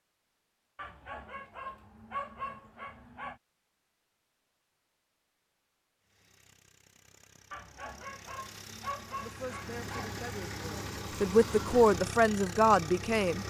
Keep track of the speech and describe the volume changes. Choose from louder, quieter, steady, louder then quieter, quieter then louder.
louder.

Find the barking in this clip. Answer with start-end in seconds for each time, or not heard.
0.8-3.4, 7.5-10.2.